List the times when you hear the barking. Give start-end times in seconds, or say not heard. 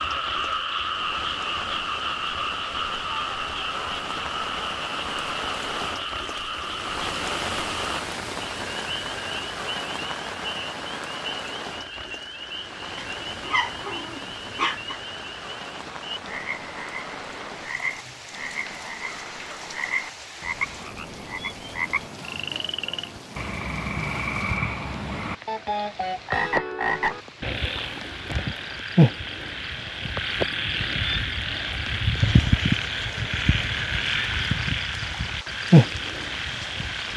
12.9-15.0.